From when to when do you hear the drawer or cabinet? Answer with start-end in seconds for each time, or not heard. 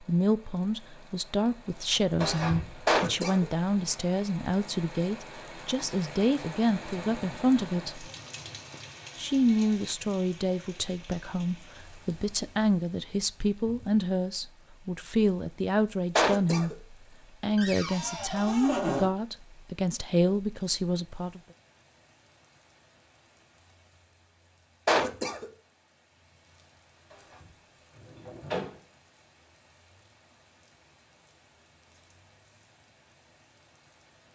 2.2-3.0, 17.6-19.1, 27.1-28.8.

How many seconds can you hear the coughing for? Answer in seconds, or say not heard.
2 s.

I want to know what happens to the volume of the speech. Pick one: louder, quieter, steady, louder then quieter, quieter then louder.
steady.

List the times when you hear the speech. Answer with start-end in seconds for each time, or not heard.
0.0-8.1, 9.2-21.4.